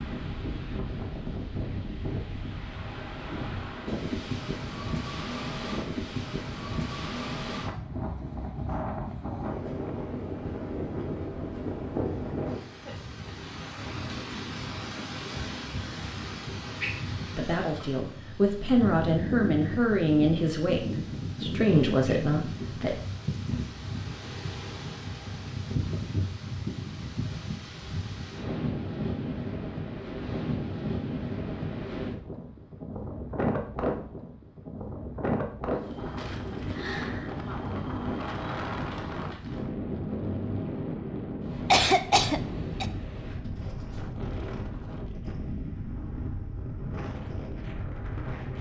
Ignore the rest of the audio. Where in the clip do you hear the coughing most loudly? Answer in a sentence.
The volume of the coughing peaks at 42 seconds.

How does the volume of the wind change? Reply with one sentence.
The volume of the wind stays about the same.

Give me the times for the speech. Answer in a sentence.
The speech can be heard from 17.4 to 22.9 s.